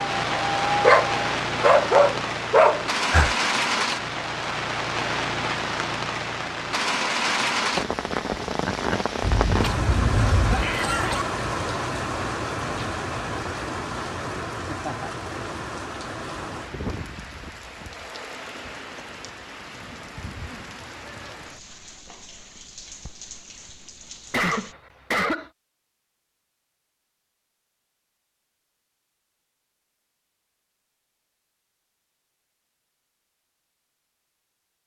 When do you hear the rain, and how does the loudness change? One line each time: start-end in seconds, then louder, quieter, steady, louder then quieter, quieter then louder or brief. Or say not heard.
0.0-24.8 quieter.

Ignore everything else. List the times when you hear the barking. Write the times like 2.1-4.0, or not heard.
0.0-3.4.